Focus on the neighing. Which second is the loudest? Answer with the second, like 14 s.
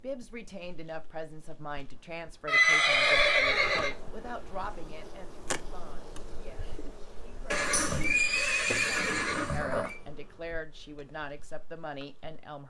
3 s.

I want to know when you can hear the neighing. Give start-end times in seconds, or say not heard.
2.5-4.0, 7.5-9.9.